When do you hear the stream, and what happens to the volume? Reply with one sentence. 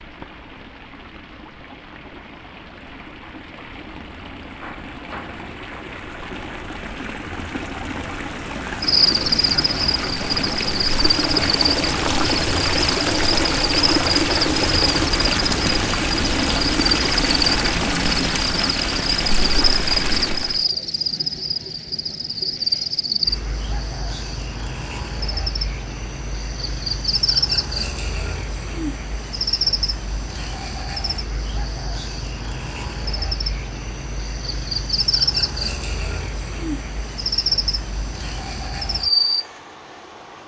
The stream can be heard from 0.0 to 20.6 s, getting louder.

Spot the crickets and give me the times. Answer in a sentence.
You can hear the crickets from 8.8 to 40.4 s.